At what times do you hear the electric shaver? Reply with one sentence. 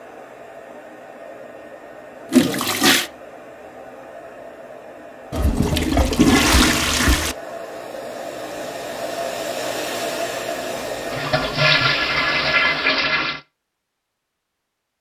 You can't hear the electric shaver here.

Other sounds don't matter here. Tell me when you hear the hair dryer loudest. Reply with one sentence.
The volume of the hair dryer peaks at 10 seconds.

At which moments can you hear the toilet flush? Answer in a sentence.
The toilet flush can be heard from 2.3 to 3.1 s, from 5.3 to 7.3 s and from 10.8 to 13.4 s.